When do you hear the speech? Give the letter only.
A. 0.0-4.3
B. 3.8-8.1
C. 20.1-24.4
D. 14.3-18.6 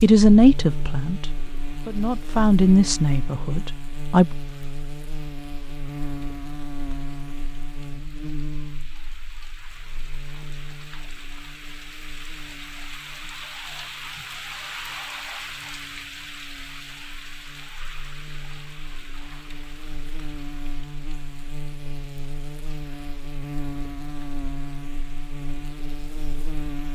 A.